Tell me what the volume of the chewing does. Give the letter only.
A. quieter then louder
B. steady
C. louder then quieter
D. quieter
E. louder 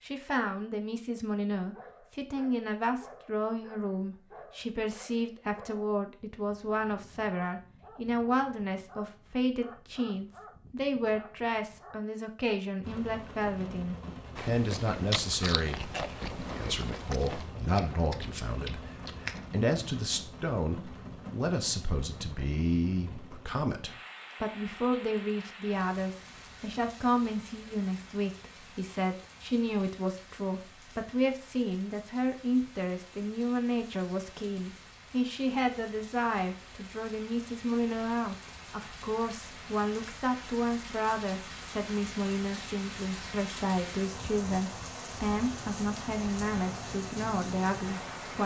D.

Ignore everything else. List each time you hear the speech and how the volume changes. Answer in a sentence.
The speech can be heard from 0.0 to 48.4 s, at a steady volume.